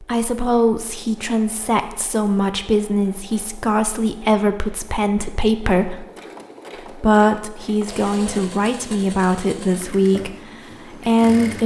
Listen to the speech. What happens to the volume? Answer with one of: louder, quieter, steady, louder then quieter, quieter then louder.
steady.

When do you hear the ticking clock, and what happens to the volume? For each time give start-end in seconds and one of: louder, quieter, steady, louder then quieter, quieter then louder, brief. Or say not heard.
not heard.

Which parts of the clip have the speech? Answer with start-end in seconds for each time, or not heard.
0.0-6.0, 6.9-11.6.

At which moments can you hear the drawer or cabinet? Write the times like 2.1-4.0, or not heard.
not heard.